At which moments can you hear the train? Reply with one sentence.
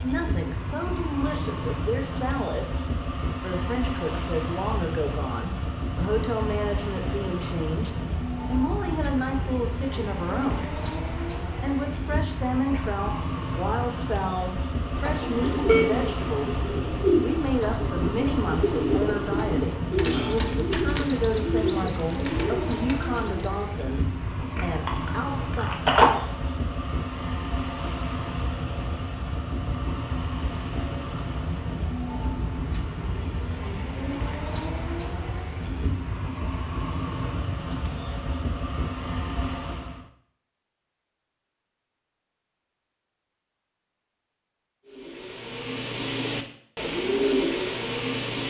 You can hear the train from 0.0 to 40.1 s.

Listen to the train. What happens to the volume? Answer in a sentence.
The volume of the train stays about the same.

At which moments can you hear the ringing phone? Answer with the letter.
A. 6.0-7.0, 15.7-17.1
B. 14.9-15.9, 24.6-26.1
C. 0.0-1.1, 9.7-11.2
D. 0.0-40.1
B.